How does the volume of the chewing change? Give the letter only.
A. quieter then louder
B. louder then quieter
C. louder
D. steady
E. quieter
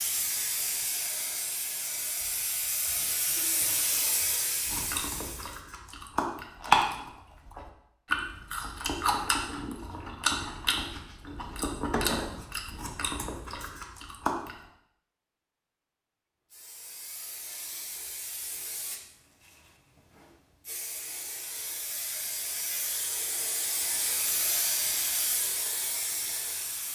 E.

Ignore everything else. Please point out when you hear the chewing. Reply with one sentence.
The chewing can be heard from 4.7 to 14.6 s.